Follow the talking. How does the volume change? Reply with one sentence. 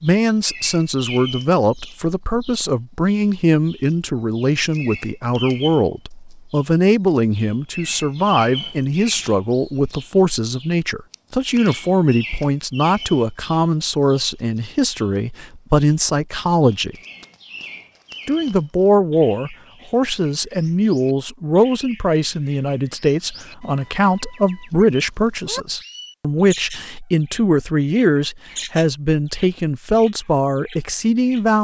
The volume of the talking stays about the same.